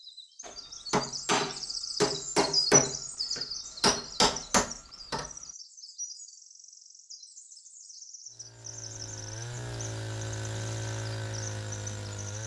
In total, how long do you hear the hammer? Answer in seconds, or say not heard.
5 s.